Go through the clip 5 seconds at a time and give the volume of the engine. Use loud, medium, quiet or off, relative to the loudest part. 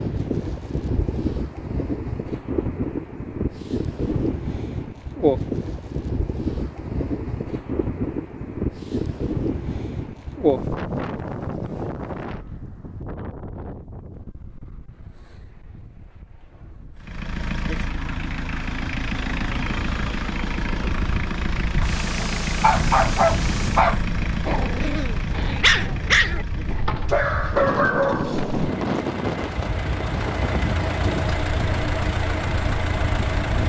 off, off, off, loud, loud, medium, loud.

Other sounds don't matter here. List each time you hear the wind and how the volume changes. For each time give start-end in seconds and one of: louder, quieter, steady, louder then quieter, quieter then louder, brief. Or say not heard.
0.0-33.6 quieter then louder.